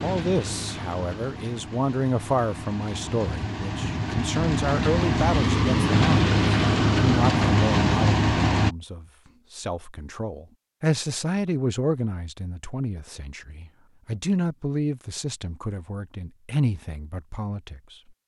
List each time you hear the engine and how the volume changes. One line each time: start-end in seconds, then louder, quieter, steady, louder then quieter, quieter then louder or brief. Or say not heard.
0.0-8.8 louder.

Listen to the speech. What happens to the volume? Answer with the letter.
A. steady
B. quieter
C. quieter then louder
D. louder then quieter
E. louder
A.